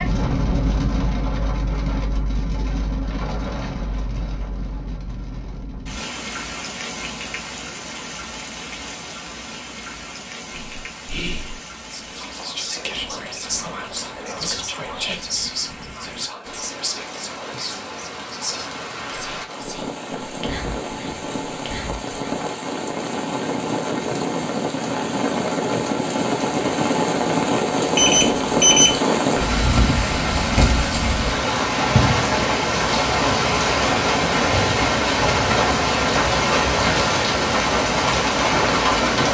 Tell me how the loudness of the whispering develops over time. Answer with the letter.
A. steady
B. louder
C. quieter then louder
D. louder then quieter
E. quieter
E.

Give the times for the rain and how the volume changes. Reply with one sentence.
The rain can be heard from 0.0 to 39.2 s, getting quieter then louder.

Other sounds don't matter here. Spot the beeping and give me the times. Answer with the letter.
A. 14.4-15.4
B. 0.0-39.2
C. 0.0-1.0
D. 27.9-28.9
D.